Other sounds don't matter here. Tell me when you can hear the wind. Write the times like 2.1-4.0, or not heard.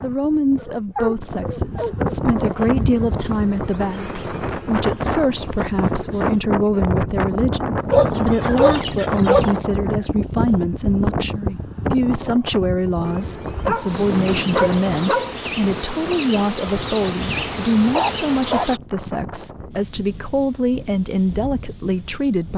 0.0-22.5.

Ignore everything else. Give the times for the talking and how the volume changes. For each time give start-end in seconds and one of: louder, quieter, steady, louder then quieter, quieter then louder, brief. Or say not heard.
0.0-22.5 steady.